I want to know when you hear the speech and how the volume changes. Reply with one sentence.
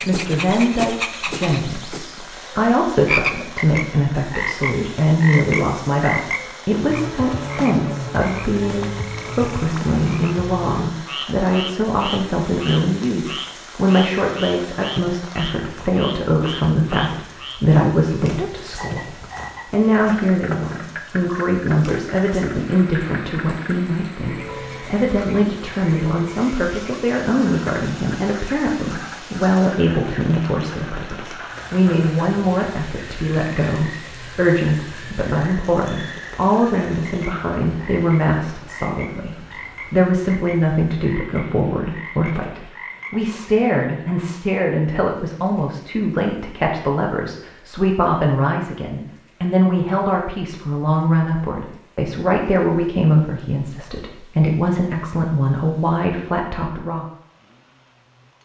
You can hear the speech from 0.0 to 57.0 s, at a steady volume.